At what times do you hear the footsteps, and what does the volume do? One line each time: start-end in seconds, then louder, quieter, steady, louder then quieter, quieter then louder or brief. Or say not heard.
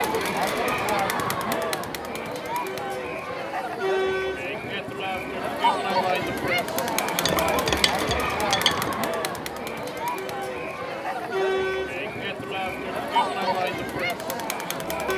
not heard.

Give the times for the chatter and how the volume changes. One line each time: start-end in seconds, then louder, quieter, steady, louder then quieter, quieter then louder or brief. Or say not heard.
0.0-15.1 steady.